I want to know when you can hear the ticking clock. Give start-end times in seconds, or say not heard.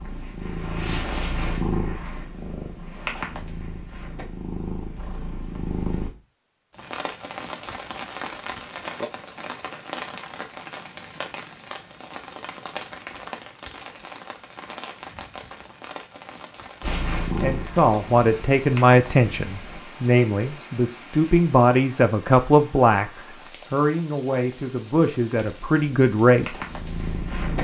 not heard.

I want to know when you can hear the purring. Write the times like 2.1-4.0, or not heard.
0.0-6.1, 16.8-19.8, 25.4-27.6.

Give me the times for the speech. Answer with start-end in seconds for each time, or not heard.
17.4-26.6.